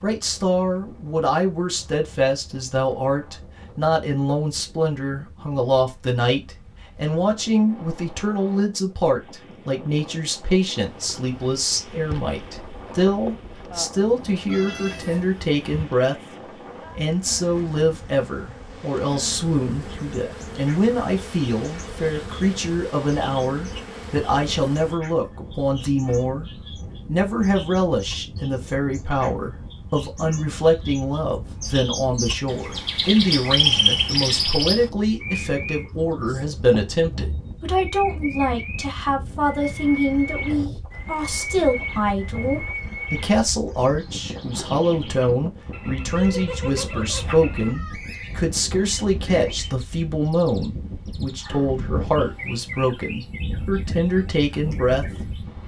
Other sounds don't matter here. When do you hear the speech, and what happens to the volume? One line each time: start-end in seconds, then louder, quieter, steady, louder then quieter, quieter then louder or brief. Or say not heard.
0.0-16.2 steady
16.9-55.0 steady.